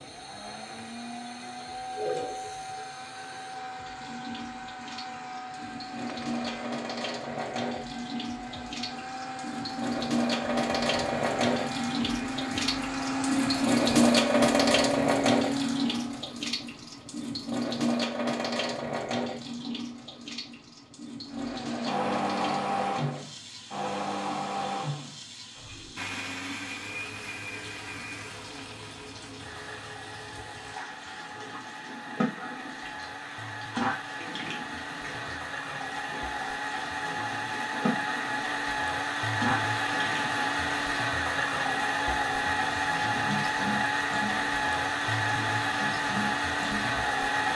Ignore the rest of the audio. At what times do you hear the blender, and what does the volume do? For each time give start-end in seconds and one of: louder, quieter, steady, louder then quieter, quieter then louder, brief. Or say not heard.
0.0-16.3 louder
21.2-47.5 quieter then louder.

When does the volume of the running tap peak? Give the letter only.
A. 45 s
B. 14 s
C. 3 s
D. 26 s
B.